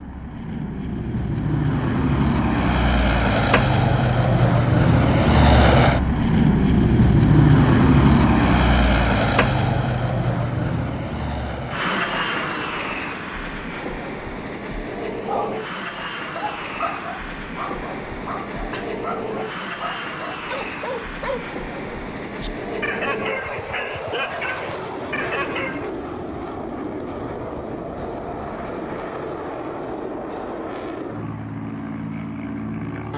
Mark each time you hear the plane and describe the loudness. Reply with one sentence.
The plane can be heard from 0.0 to 33.1 s, getting quieter.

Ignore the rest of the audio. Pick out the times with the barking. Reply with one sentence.
The barking can be heard from 15.2 to 25.9 s.